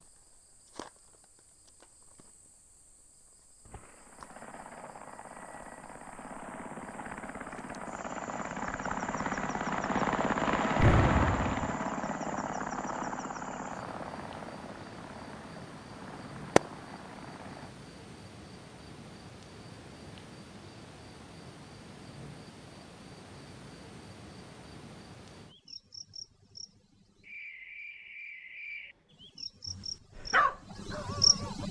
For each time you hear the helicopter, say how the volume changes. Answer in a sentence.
You can hear the helicopter from 3.6 to 17.8 s, getting louder then quieter.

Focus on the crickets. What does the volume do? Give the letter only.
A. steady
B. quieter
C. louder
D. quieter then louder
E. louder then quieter
C.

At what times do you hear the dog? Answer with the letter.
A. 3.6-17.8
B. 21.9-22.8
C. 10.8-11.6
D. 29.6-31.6
D.